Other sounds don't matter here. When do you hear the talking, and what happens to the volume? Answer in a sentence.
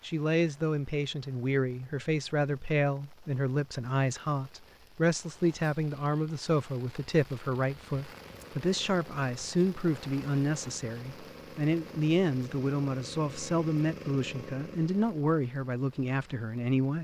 The talking can be heard from 0.0 to 16.9 s, at a steady volume.